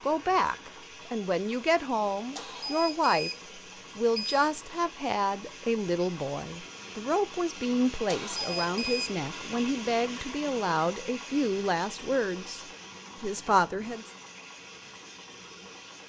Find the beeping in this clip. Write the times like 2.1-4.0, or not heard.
2.4-4.4, 8.1-9.1.